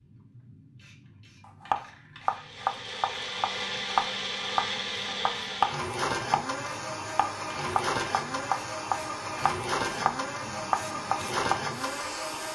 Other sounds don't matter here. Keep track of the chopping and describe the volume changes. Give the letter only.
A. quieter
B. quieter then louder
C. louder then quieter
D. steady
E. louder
D.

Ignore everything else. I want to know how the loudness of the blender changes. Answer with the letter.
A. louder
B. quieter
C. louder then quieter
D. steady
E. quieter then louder
D.